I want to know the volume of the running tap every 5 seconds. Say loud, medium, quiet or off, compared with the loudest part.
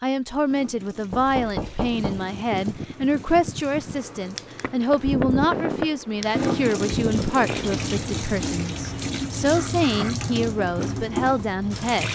quiet, loud, loud.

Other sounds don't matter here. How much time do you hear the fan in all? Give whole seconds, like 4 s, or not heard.
10 s.